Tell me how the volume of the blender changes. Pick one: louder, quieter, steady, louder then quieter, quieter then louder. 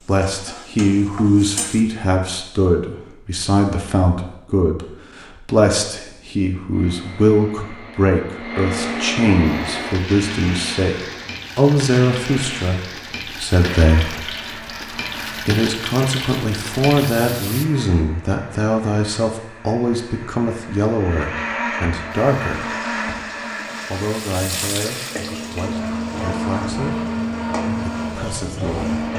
quieter then louder.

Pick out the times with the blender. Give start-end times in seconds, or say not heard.
6.7-29.1.